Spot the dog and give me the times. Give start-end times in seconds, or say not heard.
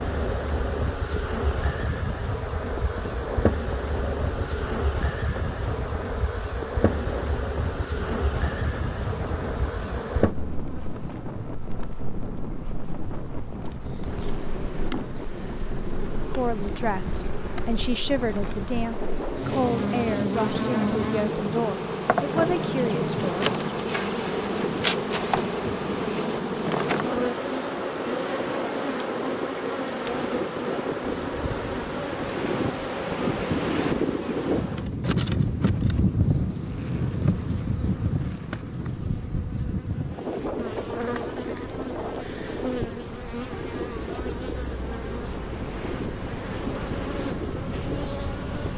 not heard.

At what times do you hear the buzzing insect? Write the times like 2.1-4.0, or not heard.
0.0-48.7.